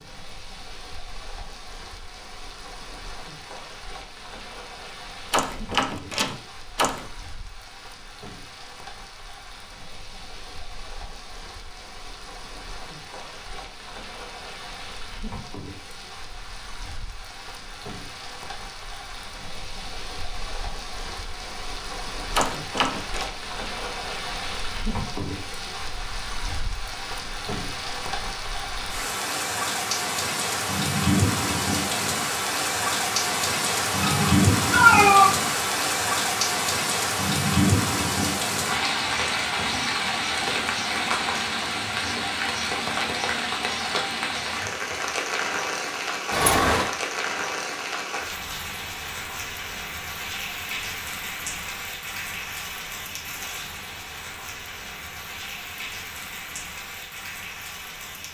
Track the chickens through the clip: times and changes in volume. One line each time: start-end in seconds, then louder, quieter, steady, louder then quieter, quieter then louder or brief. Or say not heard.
not heard.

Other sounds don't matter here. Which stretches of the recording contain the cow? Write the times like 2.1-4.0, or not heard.
not heard.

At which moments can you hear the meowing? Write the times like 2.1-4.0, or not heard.
34.0-35.3.